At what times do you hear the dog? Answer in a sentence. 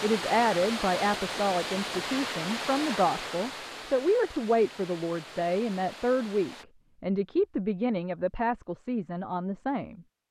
The dog can't be heard in this clip.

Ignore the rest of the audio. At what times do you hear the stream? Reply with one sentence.
You can hear the stream from 0.0 to 6.7 s.